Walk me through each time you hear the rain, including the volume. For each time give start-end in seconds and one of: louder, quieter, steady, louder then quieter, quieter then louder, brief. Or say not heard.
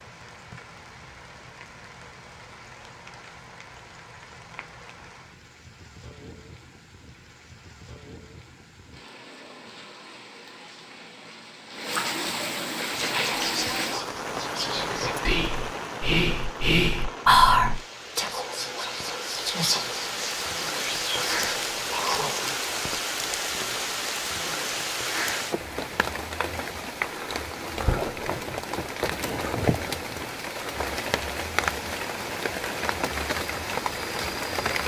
0.0-34.8 louder.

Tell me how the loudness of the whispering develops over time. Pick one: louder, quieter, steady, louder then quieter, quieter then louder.
louder then quieter.